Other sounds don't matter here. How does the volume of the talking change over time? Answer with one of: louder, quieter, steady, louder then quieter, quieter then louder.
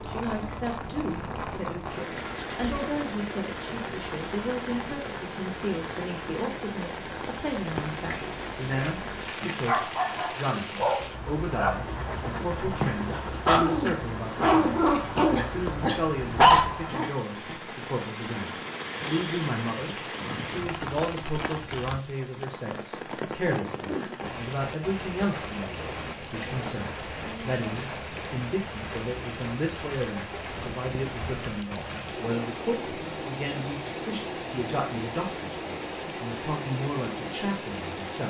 steady.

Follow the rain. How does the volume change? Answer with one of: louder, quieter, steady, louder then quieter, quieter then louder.
steady.